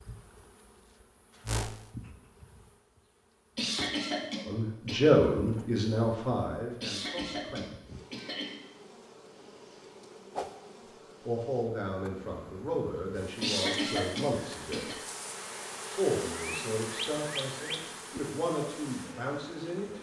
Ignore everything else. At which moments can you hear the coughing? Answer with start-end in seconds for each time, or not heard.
3.5-5.0, 6.8-8.6, 13.4-15.0.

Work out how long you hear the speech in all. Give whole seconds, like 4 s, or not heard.
11 s.